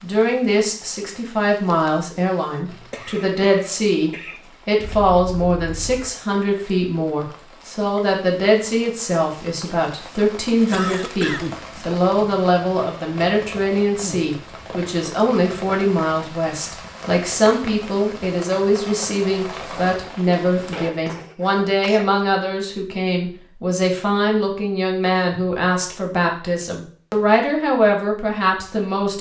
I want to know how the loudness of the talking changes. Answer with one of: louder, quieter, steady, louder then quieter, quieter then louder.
steady.